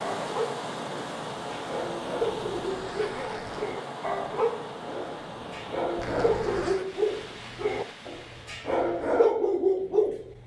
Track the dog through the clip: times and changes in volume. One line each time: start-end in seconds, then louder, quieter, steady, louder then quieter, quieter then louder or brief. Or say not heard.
0.0-10.3 louder.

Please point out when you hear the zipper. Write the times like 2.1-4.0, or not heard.
2.2-3.6, 6.0-6.8.